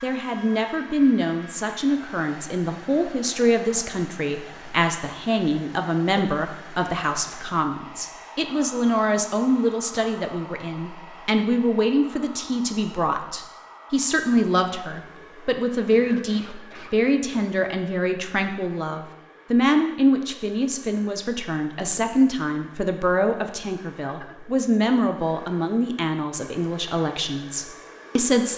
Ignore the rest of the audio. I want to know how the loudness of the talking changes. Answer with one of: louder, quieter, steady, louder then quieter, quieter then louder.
steady.